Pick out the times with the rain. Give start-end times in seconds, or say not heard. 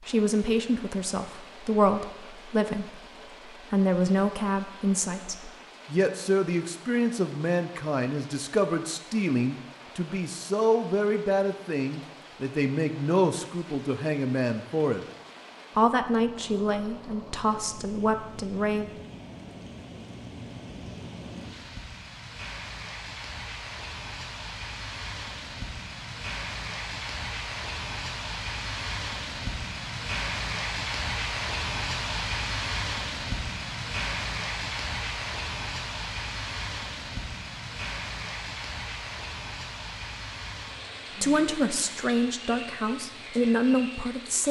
0.0-44.4.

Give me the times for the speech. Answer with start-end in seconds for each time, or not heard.
0.0-15.0, 15.8-18.9, 41.1-44.4.